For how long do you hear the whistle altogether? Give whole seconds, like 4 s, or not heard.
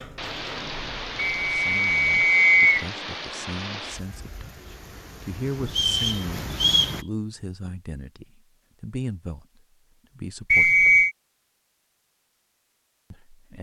3 s.